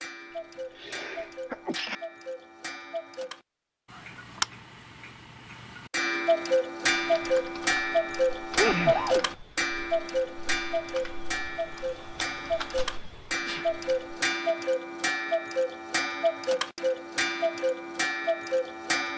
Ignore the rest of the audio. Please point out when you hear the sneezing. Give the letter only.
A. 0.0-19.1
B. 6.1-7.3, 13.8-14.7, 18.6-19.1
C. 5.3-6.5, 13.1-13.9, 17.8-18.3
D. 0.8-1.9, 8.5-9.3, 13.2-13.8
D.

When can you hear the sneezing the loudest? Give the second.
9 s.